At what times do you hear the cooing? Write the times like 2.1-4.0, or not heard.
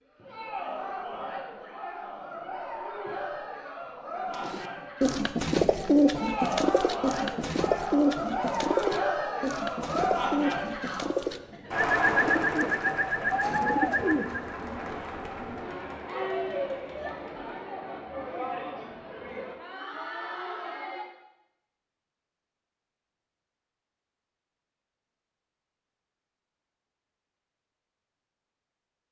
4.5-14.6.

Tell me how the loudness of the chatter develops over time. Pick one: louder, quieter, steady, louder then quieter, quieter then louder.
louder then quieter.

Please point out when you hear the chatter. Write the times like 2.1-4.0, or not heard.
0.1-21.1.